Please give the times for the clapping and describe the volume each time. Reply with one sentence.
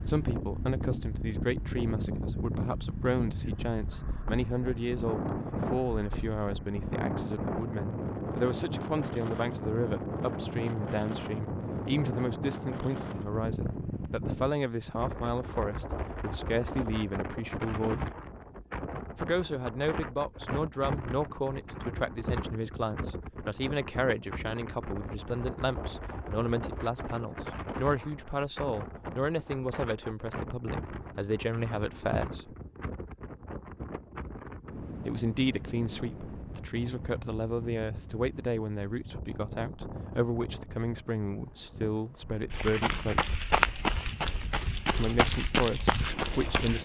You can't hear the clapping here.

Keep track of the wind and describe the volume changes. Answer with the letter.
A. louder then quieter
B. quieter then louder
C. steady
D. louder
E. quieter
E.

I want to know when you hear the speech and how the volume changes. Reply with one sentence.
You can hear the speech from 0.1 to 18.1 s, at a steady volume; from 19.1 to 32.5 s, at a steady volume; from 35.0 to 43.4 s, at a steady volume; and briefly from 45.0 to 46.8 s.